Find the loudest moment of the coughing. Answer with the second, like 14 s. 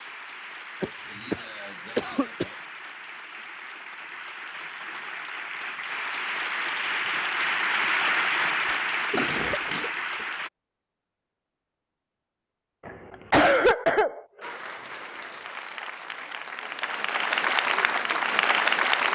14 s.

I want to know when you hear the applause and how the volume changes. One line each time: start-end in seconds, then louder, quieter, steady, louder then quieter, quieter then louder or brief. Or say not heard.
0.0-10.5 louder
14.4-19.1 louder.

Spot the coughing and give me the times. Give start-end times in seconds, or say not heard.
0.8-2.5, 9.1-10.2, 12.8-14.6.